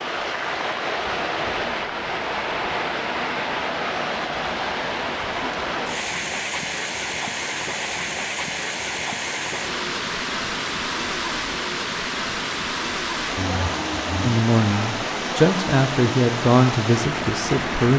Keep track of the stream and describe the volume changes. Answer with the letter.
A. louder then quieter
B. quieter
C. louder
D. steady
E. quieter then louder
D.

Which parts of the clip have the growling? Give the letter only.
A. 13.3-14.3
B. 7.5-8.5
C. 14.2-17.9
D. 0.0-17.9
A.